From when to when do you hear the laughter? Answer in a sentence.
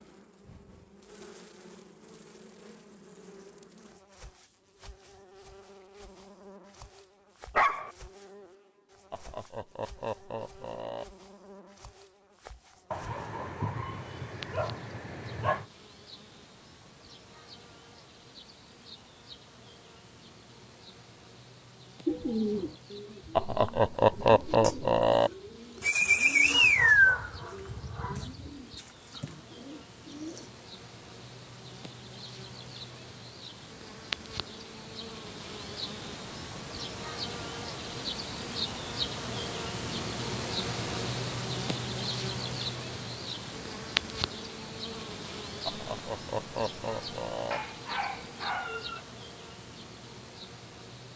You can hear the laughter from 9.1 to 11.1 s, from 23.4 to 25.3 s and from 45.6 to 47.6 s.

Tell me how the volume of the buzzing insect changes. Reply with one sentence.
The volume of the buzzing insect goes up.